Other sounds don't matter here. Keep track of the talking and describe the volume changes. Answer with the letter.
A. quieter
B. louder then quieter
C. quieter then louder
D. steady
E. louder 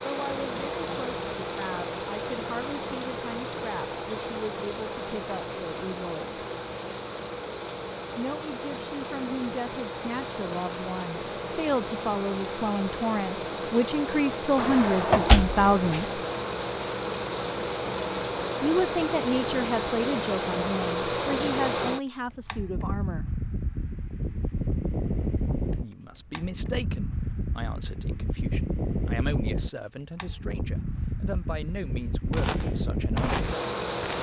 B.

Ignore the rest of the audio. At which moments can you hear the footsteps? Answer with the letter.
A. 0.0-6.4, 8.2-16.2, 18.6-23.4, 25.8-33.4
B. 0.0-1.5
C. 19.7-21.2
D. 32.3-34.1
D.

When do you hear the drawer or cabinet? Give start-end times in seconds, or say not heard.
14.6-16.1.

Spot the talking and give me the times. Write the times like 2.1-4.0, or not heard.
0.0-6.4, 8.2-16.2, 18.6-23.4, 25.8-33.4.